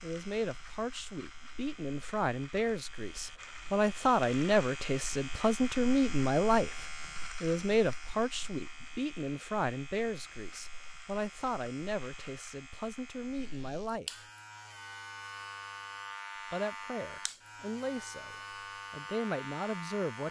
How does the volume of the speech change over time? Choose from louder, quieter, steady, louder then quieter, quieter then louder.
louder then quieter.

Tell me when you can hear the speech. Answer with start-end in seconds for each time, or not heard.
0.0-14.2, 16.5-20.2.